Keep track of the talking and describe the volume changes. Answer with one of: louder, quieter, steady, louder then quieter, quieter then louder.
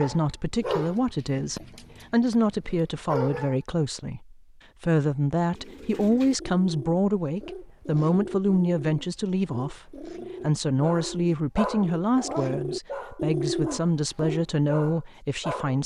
steady.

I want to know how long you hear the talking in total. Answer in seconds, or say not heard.
16 s.